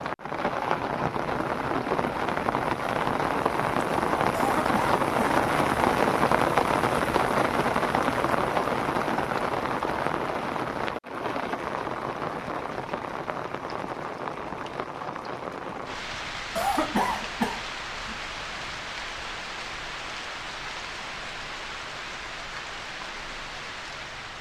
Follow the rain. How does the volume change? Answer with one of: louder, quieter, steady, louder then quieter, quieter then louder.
quieter.